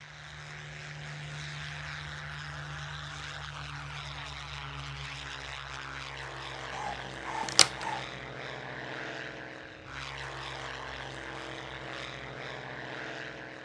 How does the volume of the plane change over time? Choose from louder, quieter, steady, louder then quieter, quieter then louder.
steady.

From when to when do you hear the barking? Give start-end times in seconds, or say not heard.
6.7-8.0.